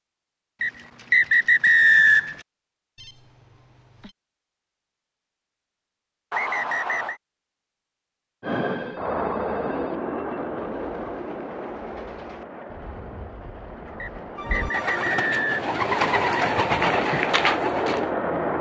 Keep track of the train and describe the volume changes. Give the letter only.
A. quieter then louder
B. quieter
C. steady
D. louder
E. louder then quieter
A.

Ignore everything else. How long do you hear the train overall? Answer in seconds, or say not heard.
10 s.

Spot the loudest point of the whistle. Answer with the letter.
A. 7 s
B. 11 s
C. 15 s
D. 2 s
D.